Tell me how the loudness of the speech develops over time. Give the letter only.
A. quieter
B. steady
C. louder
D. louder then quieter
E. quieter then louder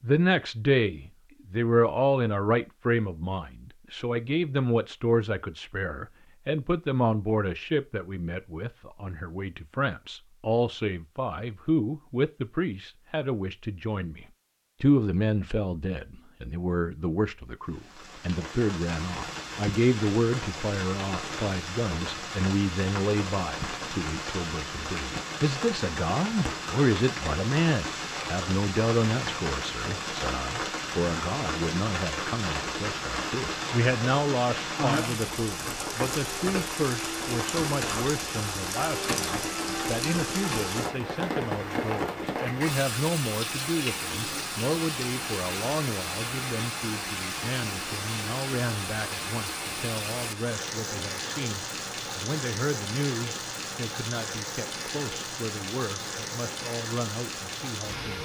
A.